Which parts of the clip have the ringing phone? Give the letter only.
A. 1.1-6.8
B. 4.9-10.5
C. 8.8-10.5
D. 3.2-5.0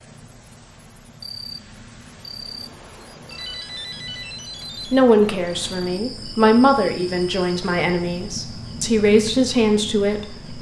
D.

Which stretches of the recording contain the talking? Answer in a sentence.
You can hear the talking from 4.9 to 10.5 s.